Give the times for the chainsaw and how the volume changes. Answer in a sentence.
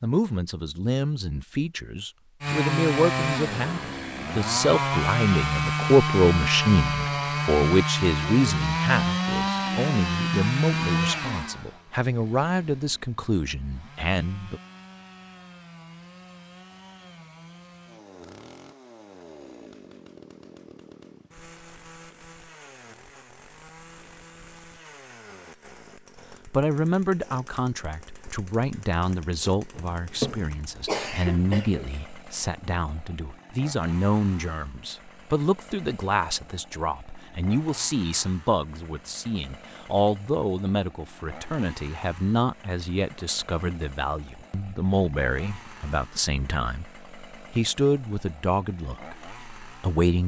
The chainsaw can be heard from 2.4 to 50.2 s, getting quieter.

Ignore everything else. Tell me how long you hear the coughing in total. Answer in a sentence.
The coughing can be heard for 2 seconds in total.